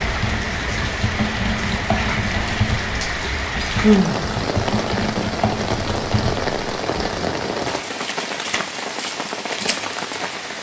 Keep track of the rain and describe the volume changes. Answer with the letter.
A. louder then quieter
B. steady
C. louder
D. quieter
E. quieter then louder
B.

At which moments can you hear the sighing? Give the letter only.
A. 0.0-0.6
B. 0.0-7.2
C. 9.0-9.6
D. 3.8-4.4
D.